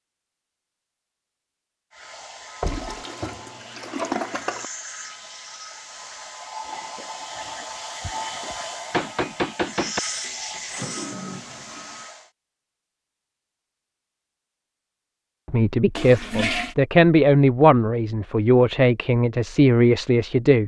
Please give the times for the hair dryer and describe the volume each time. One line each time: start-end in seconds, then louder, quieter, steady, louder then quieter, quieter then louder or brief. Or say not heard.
1.9-12.3 louder.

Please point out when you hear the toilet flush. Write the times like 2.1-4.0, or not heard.
2.6-4.7, 10.2-12.1, 15.9-16.8.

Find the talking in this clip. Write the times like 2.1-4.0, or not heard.
15.5-20.6.